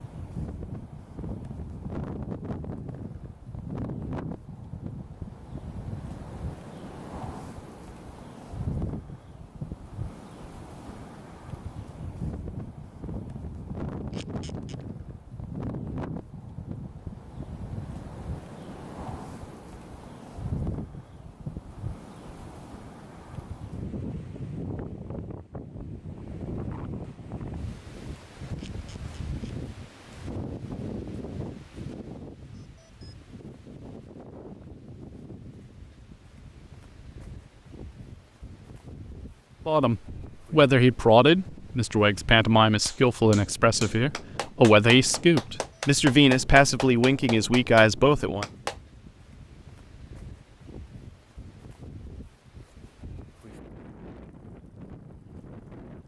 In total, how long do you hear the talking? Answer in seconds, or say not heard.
9 s.